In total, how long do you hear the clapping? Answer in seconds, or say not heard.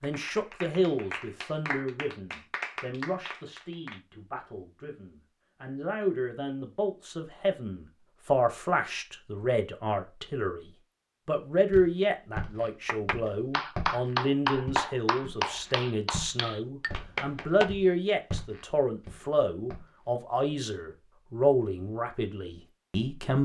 9 s.